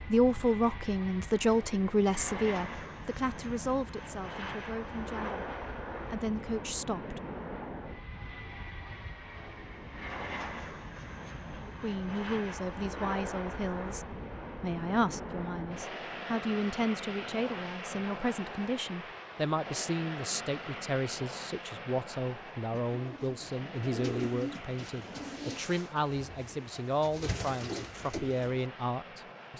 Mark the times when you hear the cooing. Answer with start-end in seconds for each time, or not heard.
22.7-28.6.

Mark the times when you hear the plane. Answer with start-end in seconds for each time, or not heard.
0.0-29.5.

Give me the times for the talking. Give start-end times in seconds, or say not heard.
0.0-7.2, 11.7-29.5.